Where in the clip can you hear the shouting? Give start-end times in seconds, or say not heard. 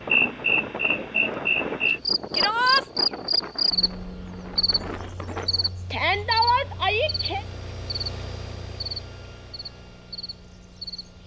2.3-2.9, 5.9-7.5.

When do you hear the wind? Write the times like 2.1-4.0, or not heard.
0.0-5.7.